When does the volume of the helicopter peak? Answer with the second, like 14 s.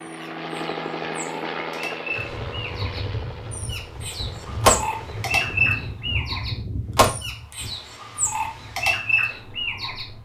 1 s.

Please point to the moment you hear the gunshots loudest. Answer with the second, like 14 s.
5 s.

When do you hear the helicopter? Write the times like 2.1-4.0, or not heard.
0.0-5.7.